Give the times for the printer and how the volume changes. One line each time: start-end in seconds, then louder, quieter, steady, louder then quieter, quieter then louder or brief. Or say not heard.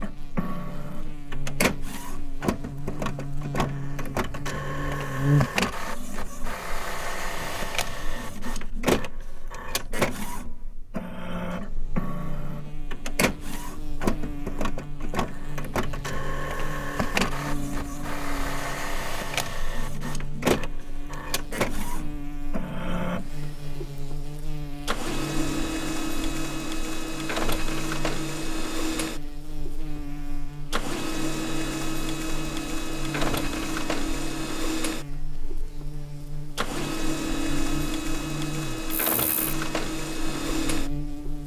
0.0-41.4 steady.